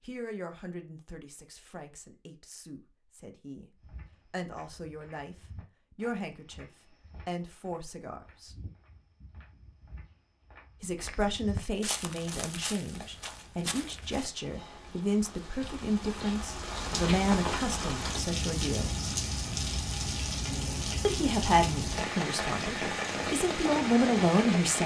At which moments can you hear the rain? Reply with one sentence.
The rain can be heard from 12.1 to 24.8 s.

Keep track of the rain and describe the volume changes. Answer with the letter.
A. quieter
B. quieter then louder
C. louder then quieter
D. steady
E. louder
E.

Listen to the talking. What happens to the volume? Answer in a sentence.
The volume of the talking goes up.